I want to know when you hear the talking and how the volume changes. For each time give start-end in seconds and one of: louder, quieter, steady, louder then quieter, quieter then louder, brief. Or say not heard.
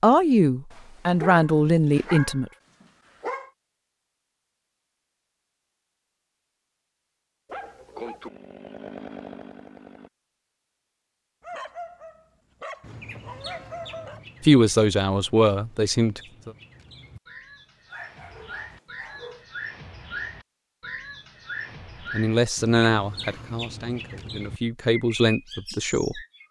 0.0-2.5 brief
14.4-16.5 brief
22.1-26.2 quieter then louder.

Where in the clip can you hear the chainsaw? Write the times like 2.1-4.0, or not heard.
8.2-10.1.